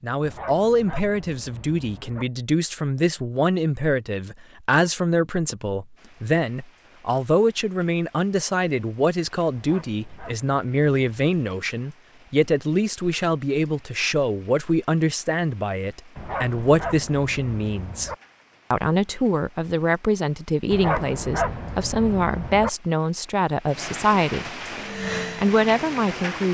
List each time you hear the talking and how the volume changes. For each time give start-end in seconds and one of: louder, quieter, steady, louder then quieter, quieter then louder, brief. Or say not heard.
0.0-18.1 steady
18.7-24.6 steady
25.4-26.4 brief.